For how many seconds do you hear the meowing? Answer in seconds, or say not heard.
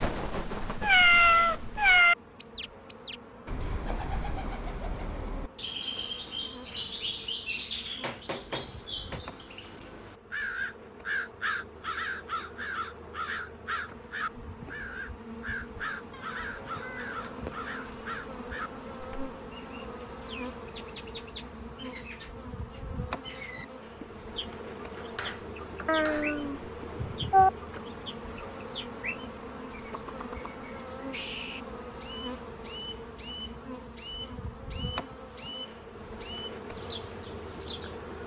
5 s.